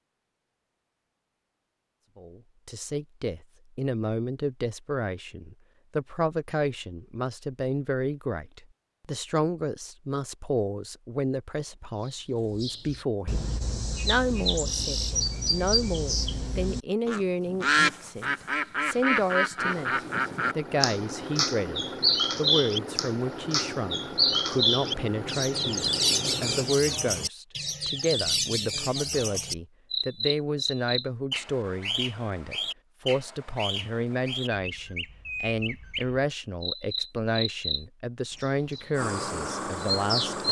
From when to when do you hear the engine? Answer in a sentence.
The engine can be heard from 19.6 to 27.3 s and from 38.9 to 40.4 s.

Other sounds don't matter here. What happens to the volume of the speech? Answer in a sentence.
The volume of the speech stays about the same.